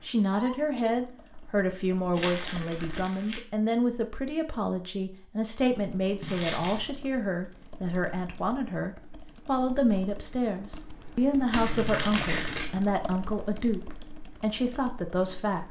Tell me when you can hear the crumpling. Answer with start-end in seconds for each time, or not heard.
2.1-3.4, 6.2-6.8, 11.5-12.7.